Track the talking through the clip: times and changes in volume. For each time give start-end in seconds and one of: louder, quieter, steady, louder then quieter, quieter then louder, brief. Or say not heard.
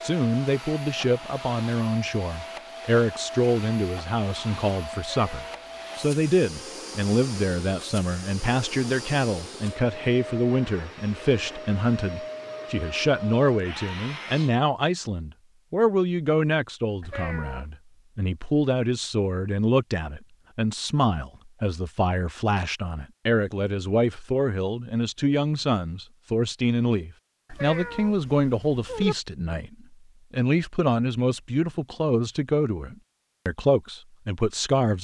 0.0-34.9 steady.